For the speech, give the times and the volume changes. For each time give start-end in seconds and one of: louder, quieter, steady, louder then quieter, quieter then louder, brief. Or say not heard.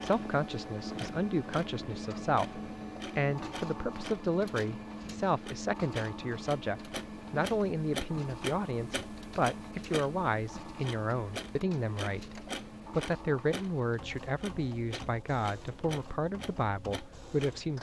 0.0-17.7 steady.